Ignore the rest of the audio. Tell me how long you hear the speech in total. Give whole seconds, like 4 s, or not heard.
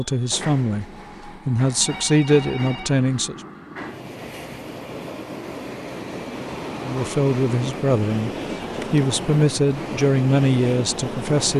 8 s.